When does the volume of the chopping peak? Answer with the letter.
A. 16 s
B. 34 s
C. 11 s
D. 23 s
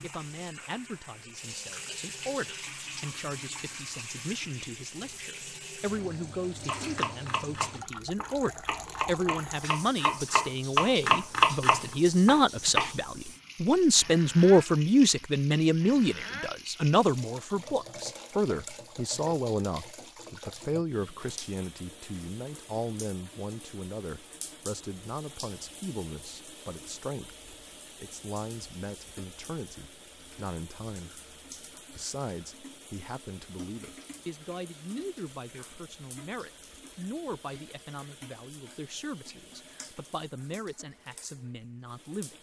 C.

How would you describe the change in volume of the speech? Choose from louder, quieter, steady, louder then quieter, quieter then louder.
louder then quieter.